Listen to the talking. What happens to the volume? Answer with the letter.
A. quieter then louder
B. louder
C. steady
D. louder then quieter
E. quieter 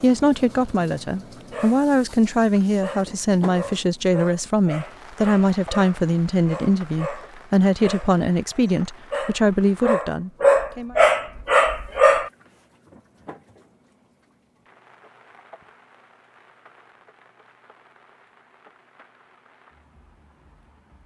C.